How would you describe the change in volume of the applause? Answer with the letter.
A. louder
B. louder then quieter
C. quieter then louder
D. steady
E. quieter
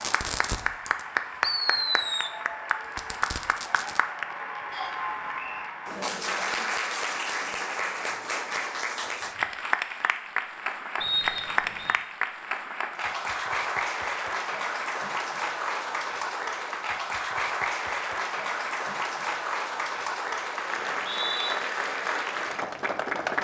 D.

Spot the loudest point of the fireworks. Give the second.
2 s.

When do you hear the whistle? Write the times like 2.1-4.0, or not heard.
4.7-5.7, 11.0-11.9, 20.8-21.6.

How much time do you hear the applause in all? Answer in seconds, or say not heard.
23 s.